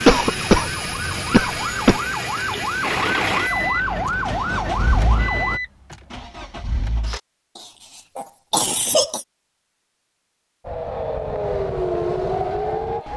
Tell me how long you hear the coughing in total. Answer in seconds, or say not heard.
4 s.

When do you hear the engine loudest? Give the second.
3 s.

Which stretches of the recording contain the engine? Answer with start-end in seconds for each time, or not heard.
2.8-7.2.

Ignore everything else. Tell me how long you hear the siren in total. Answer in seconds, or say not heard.
8 s.